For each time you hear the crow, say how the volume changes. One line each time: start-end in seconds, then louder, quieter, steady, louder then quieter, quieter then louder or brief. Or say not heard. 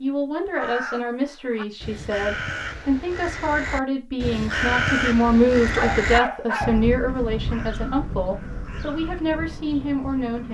0.4-10.5 louder then quieter.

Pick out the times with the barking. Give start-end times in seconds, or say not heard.
5.8-6.8.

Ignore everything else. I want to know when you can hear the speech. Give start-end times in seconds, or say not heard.
0.0-10.5.